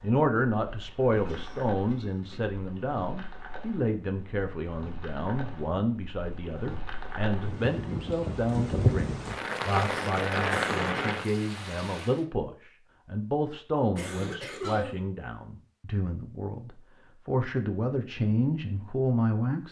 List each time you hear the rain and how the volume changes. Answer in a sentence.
You can hear the rain from 0.0 to 12.2 s, getting louder.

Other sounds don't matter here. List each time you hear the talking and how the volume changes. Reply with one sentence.
You can hear the talking from 0.0 to 19.6 s, at a steady volume.